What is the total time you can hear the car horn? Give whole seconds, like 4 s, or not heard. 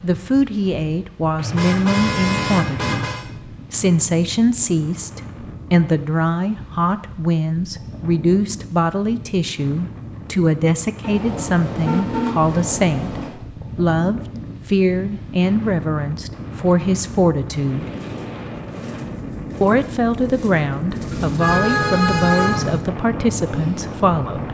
6 s.